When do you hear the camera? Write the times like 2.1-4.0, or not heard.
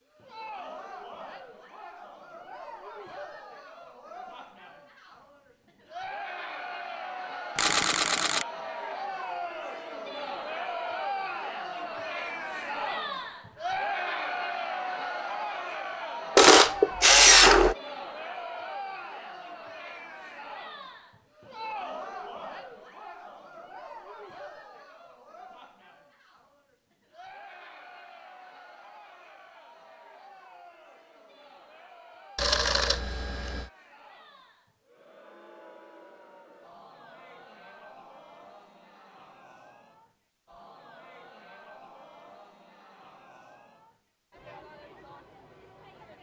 7.5-8.4, 16.4-17.8, 32.4-33.7.